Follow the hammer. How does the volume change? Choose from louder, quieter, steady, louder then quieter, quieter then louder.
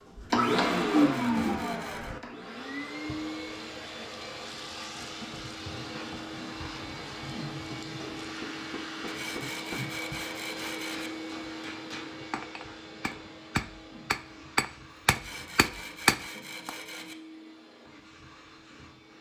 louder.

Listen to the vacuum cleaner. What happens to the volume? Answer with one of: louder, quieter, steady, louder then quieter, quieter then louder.
quieter.